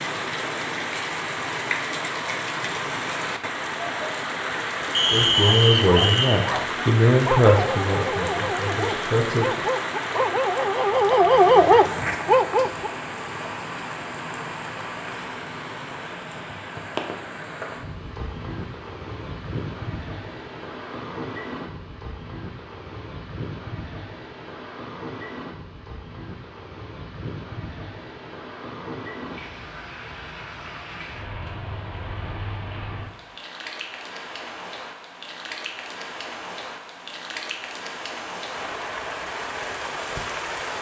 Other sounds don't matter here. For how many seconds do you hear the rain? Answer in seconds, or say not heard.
41 s.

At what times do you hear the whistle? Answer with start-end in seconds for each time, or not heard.
4.9-6.3.